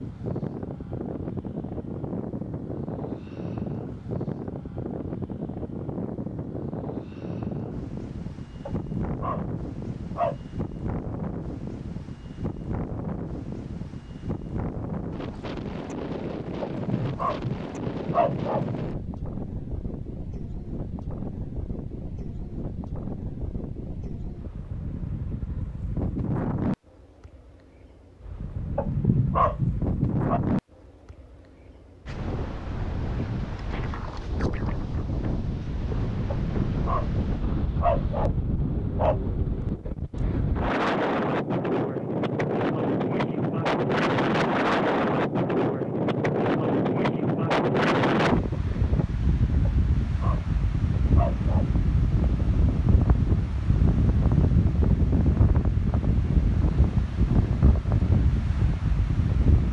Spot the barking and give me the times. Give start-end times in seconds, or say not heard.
8.7-10.4, 16.6-18.9, 28.8-30.4, 36.4-39.2, 49.8-51.8.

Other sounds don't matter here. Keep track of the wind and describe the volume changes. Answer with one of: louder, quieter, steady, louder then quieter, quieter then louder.
louder.